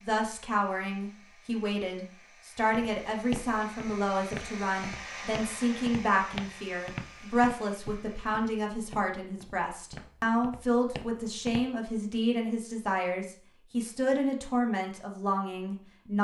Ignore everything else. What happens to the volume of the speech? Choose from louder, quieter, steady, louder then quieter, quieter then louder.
steady.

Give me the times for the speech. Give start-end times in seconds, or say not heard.
0.0-16.1.